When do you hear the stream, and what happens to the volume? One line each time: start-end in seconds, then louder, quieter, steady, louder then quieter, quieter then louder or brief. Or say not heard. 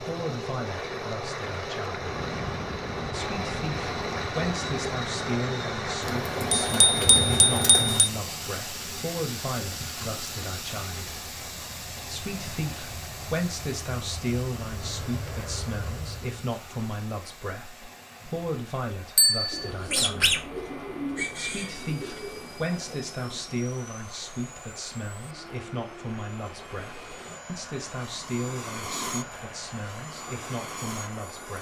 0.0-31.5 quieter.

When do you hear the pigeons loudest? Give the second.
20 s.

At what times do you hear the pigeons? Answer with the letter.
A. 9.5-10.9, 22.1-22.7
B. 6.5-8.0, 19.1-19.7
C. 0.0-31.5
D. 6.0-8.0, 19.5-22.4
D.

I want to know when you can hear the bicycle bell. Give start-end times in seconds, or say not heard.
6.5-8.0, 19.1-19.7.